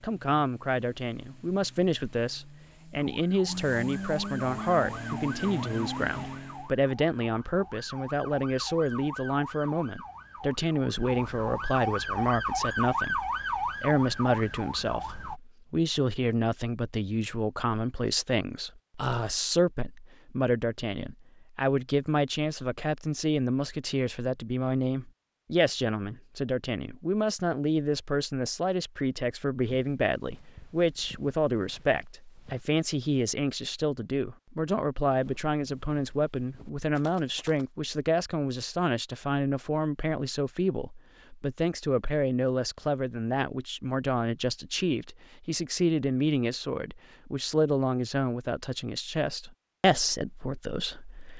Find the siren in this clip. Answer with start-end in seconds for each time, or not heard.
3.0-15.4.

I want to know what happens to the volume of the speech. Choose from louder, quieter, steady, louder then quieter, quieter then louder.
steady.